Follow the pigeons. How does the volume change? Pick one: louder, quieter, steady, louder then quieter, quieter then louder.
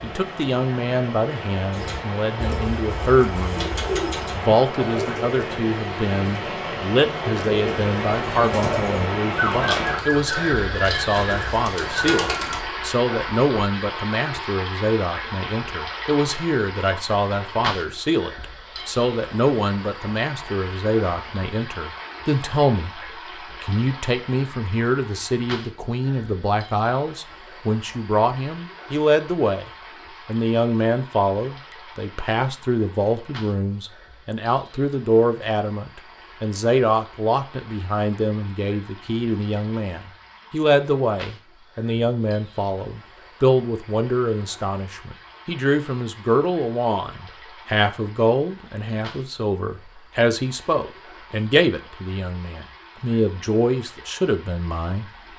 louder.